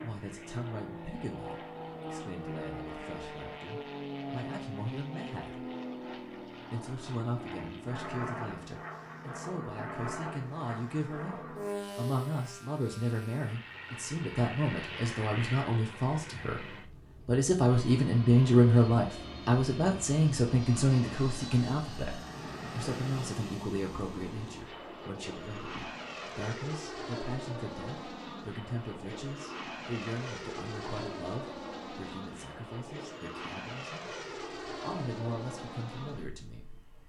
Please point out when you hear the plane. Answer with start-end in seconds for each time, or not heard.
0.0-37.0.